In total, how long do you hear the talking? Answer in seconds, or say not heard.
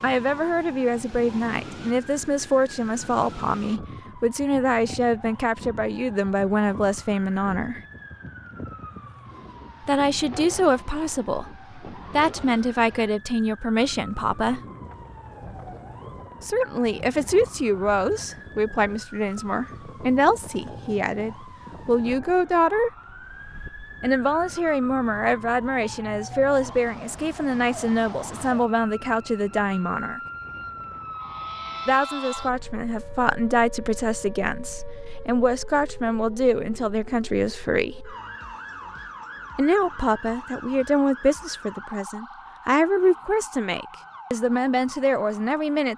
38 s.